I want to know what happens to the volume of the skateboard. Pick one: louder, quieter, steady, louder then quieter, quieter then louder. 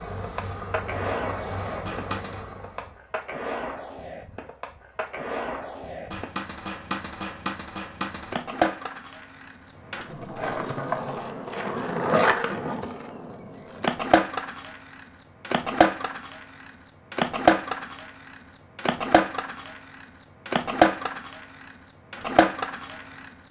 louder.